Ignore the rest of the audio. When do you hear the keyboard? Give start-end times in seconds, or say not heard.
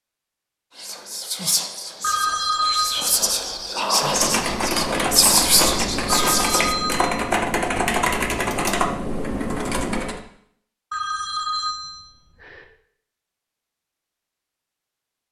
4.0-10.2.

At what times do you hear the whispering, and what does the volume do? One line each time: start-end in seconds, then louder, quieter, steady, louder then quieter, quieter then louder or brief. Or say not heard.
0.8-6.8 louder.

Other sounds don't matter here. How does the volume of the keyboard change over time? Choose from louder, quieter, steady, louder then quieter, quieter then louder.
steady.